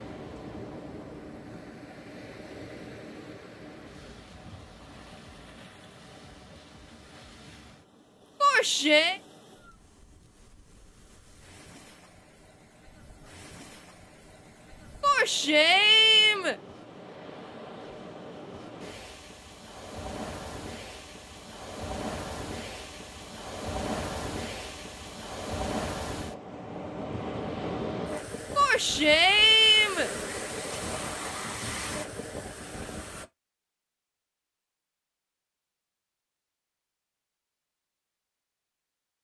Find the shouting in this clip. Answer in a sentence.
You can hear the shouting from 8.4 to 9.2 s, from 15.0 to 16.6 s and from 28.6 to 30.1 s.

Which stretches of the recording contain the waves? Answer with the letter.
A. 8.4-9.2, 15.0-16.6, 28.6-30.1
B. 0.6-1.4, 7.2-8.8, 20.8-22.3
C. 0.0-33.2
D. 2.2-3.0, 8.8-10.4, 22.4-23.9
C.